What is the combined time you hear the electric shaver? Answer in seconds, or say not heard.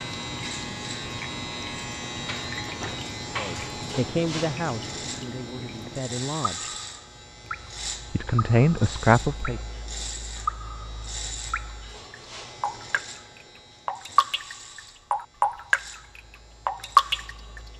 18 s.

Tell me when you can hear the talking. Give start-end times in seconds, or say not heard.
3.4-6.8, 8.1-9.6.